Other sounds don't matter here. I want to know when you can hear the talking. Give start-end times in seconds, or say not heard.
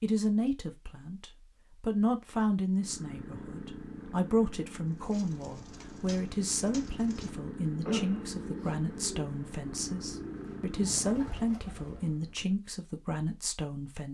0.0-14.0.